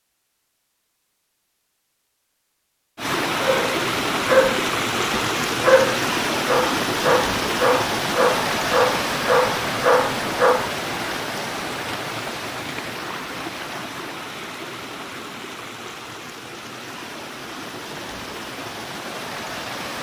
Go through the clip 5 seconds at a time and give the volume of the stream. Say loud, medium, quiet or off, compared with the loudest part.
loud, loud, medium, medium.